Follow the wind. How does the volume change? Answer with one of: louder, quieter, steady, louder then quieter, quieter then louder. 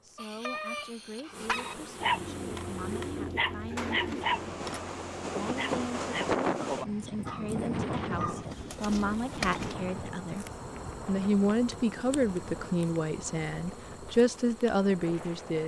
quieter.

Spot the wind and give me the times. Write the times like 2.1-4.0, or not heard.
4.1-15.6.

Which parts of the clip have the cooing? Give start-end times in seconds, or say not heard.
2.4-4.8, 8.2-9.8.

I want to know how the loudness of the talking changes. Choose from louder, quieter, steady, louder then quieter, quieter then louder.
louder.